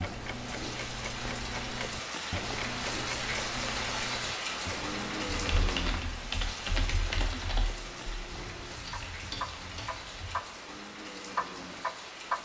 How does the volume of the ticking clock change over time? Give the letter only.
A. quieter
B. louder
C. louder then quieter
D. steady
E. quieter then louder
E.